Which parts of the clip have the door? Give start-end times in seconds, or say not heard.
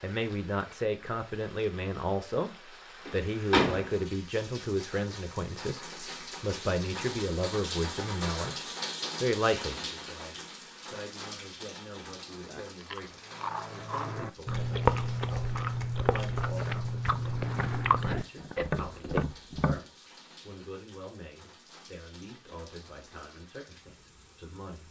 3.0-3.9.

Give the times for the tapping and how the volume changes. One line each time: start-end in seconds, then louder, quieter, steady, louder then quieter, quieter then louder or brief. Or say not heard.
14.5-19.8 louder.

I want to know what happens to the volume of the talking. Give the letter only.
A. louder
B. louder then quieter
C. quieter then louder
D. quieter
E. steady
D.